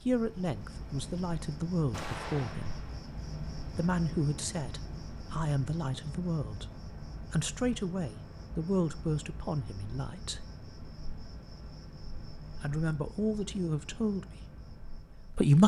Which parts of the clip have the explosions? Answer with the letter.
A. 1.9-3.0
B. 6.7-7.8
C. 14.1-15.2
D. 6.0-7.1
A.